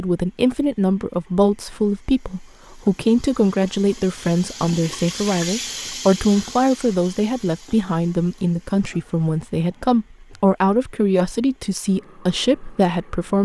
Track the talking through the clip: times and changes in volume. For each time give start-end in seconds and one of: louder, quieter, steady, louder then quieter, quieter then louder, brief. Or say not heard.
0.0-13.4 steady.